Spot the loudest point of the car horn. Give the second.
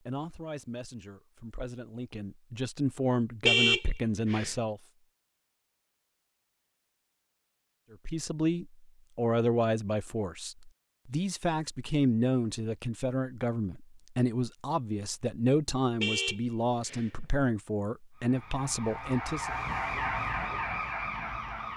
4 s.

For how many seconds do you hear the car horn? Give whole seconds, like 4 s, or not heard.
2 s.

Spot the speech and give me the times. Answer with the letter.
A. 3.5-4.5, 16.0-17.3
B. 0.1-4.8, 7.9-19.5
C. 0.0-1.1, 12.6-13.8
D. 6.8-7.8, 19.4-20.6
B.